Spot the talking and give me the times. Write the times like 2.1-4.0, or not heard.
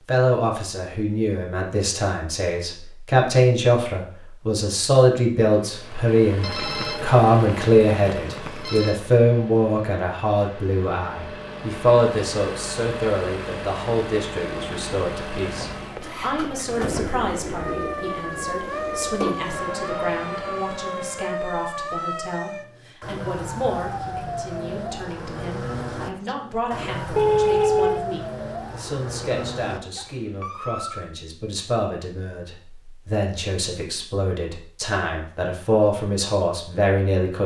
0.1-37.4.